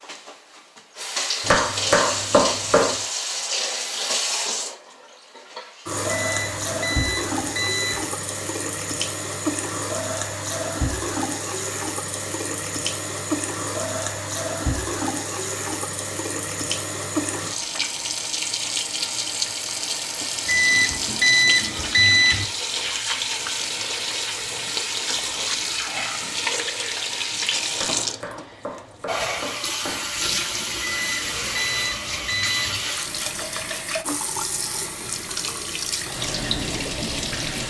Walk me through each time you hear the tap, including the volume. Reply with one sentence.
The tap can be heard from 0.0 to 37.6 s, at a steady volume.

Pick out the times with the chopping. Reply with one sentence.
The chopping can be heard from 1.4 to 3.0 s and from 27.8 to 30.2 s.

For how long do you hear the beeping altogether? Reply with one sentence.
The beeping can be heard for 6 seconds in total.